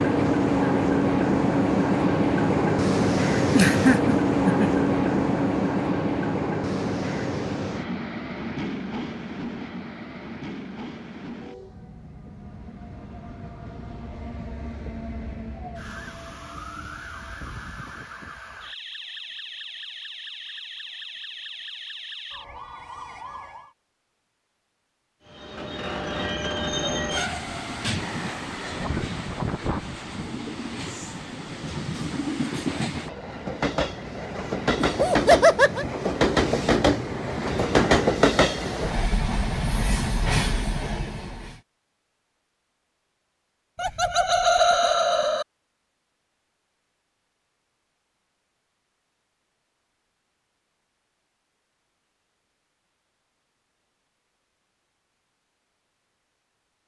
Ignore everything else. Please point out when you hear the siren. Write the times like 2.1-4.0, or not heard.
15.6-23.8.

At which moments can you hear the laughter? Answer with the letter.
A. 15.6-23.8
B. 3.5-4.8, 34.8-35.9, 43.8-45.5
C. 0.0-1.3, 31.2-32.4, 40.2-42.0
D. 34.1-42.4
B.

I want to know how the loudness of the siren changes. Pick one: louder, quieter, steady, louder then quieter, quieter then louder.
steady.